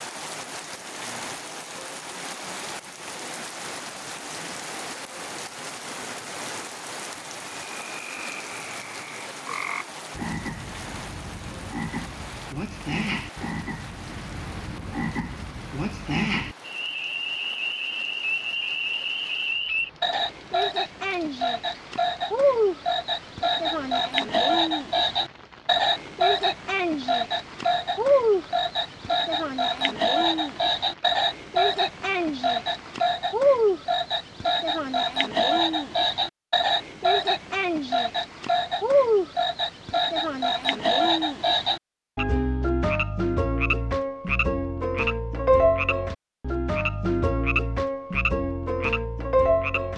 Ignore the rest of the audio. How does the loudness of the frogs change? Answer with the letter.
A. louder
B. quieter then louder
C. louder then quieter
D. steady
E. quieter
A.